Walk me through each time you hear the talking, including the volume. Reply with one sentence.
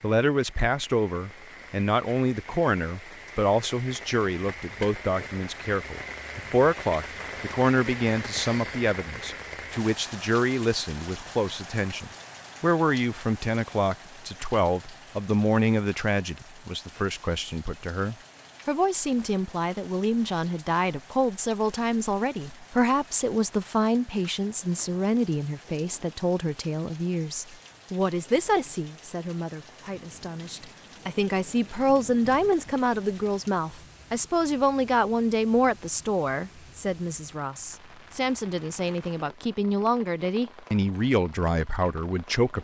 You can hear the talking from 0.0 to 42.5 s, at a steady volume.